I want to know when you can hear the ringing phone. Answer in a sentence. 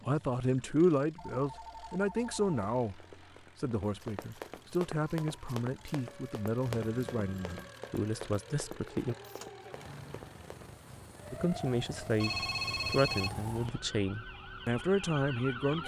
You can hear the ringing phone from 1.1 to 2.5 s, from 6.8 to 7.7 s and from 12.2 to 13.8 s.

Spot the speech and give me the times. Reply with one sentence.
The speech can be heard from 0.0 to 3.0 s, from 3.6 to 9.2 s and from 11.3 to 15.8 s.